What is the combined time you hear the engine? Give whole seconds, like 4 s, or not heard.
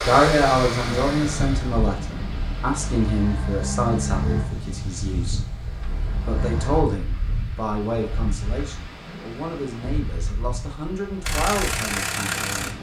8 s.